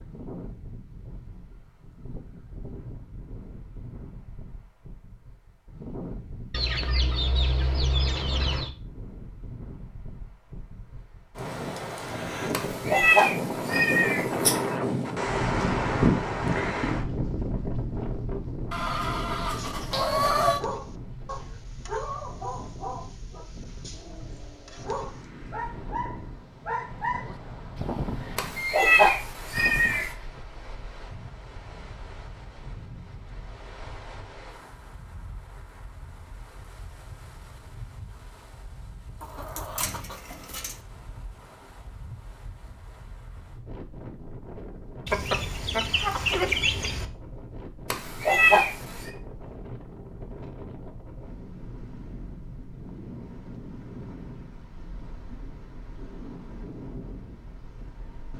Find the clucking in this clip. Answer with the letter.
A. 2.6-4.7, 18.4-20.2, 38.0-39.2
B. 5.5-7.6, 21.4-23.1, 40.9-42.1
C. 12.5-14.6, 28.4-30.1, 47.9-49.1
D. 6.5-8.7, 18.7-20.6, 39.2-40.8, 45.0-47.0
D.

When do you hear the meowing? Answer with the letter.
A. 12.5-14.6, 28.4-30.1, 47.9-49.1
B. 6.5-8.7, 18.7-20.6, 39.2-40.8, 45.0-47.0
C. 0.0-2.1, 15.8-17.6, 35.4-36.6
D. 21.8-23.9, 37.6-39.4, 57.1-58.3
A.